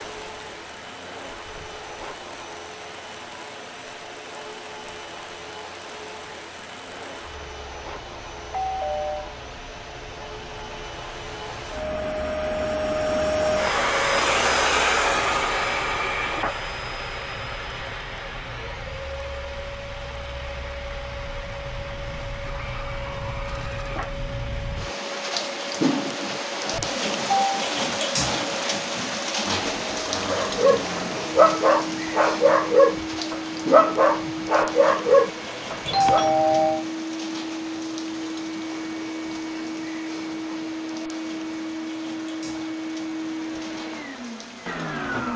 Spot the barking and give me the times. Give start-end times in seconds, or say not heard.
30.3-36.2.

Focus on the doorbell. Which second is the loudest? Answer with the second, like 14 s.
36 s.